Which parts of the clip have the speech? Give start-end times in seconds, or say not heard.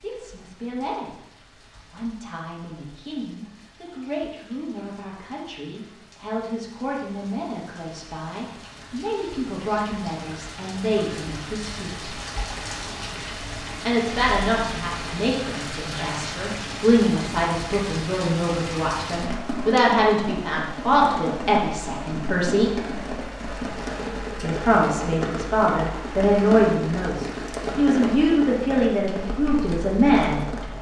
0.0-1.1, 1.8-12.2, 13.8-22.8, 24.4-30.7.